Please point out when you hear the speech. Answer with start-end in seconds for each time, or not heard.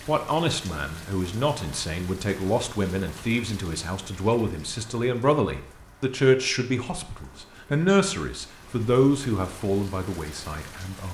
0.1-11.0.